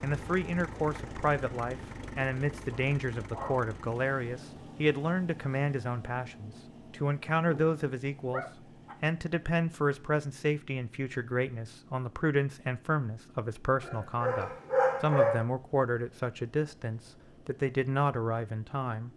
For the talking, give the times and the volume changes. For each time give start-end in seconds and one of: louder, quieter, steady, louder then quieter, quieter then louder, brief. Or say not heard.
0.0-19.1 steady.